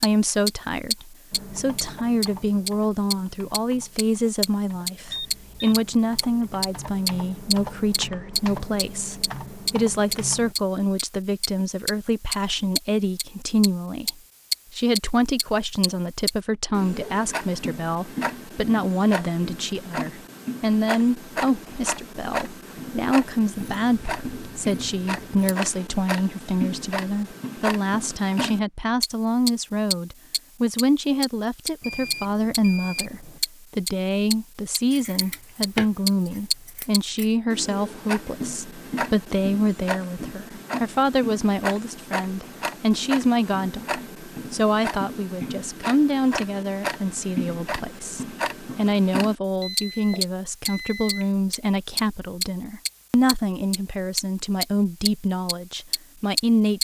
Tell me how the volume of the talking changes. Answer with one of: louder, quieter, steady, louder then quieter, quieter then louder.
steady.